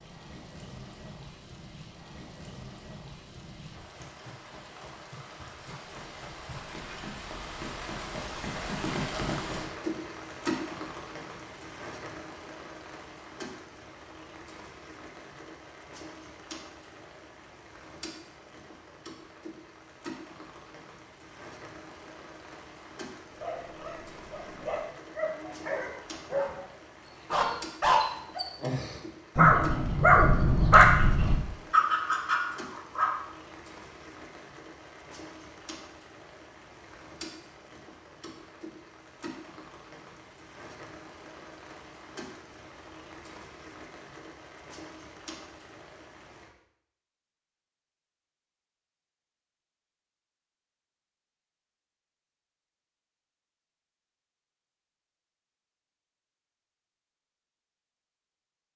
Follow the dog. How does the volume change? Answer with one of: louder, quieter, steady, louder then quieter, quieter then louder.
louder.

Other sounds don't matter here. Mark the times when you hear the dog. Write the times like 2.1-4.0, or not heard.
23.4-26.6, 27.3-33.1.